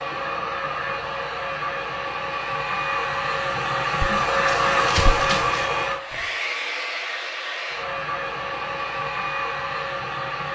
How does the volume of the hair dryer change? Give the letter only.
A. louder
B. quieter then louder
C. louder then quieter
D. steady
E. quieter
C.